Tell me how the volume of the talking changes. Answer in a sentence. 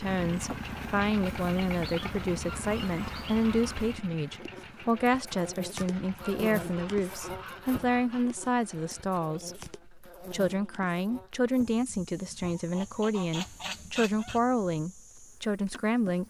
The volume of the talking stays about the same.